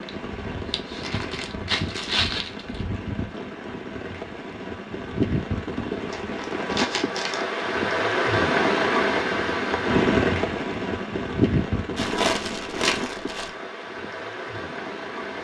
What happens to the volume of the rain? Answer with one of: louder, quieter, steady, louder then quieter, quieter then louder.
louder then quieter.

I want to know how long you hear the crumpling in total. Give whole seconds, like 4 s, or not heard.
6 s.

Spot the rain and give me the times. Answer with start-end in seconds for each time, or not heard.
0.0-15.3.